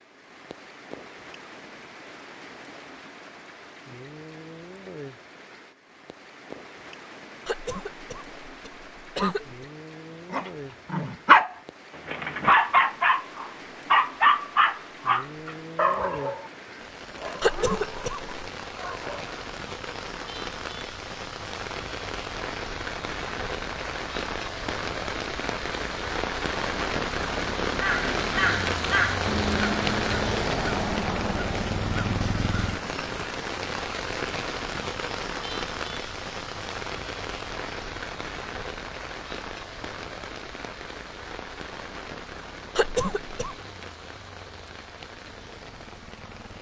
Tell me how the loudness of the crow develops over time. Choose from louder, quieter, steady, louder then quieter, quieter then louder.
quieter.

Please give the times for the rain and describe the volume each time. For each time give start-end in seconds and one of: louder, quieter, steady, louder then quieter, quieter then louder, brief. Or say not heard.
0.0-46.5 louder then quieter.